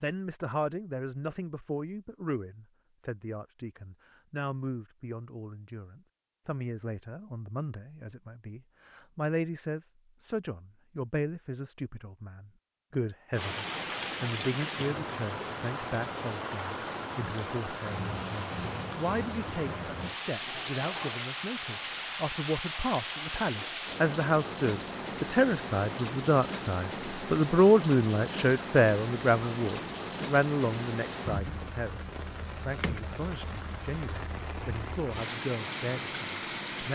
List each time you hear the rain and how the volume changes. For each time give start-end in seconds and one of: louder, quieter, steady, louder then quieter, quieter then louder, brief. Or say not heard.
13.3-36.9 steady.